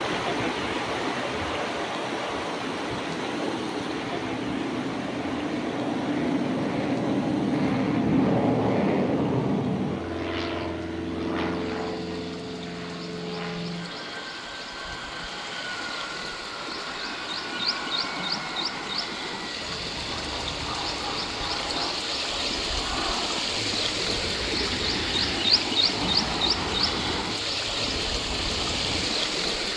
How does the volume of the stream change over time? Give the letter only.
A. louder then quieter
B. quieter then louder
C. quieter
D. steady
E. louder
B.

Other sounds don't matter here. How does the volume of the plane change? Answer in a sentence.
The loudness of the plane goes up, then down.